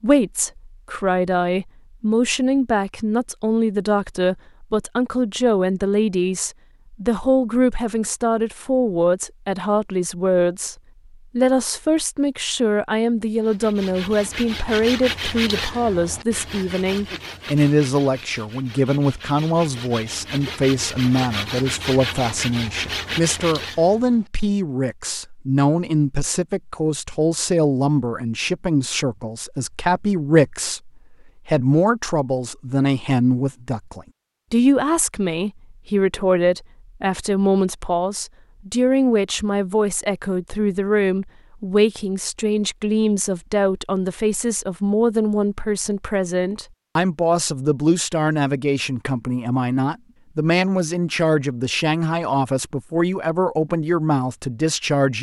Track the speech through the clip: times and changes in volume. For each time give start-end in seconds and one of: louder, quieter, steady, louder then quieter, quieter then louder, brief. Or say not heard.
0.0-10.8 steady
11.3-55.1 steady.